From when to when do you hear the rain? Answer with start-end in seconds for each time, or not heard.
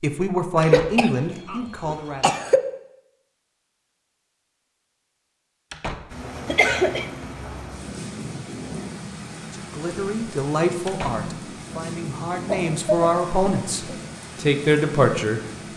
6.1-15.7.